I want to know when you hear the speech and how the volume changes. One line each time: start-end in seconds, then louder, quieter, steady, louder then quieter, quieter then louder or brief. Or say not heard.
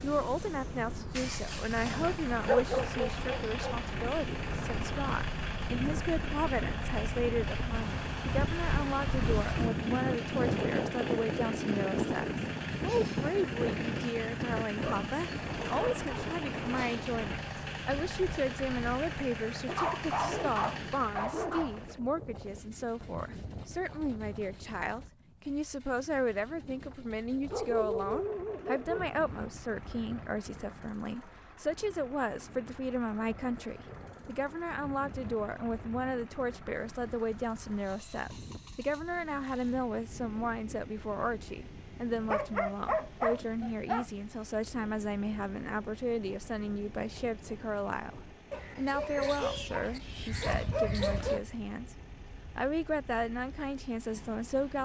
0.0-52.0 steady
52.5-54.8 brief.